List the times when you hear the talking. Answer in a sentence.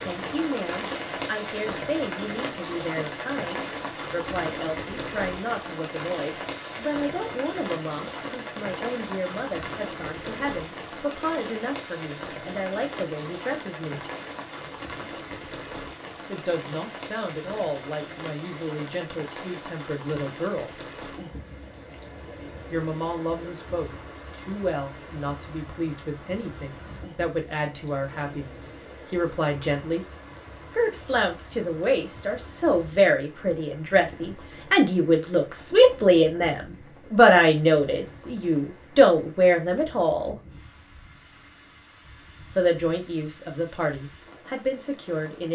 The talking can be heard from 0.1 to 14.1 s, from 16.2 to 20.7 s, from 22.7 to 30.1 s, from 30.7 to 40.4 s and from 42.5 to 45.5 s.